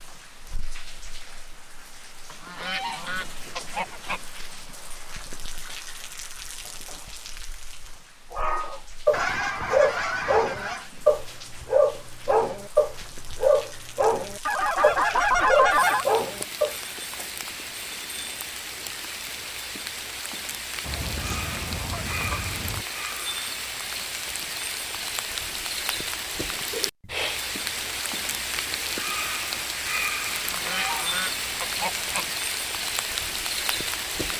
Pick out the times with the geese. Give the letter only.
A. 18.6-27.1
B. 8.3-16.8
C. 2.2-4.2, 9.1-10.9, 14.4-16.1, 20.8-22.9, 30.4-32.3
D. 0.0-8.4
C.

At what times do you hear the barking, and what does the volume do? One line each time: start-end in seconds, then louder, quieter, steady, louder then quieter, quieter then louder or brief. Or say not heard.
8.3-16.8 steady.